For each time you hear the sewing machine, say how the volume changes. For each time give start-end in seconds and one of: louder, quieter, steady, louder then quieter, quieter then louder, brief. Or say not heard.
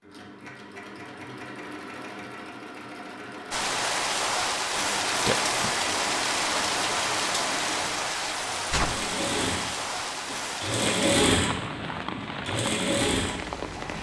0.0-13.9 louder.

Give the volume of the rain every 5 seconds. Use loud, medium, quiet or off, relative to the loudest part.
loud, loud, medium.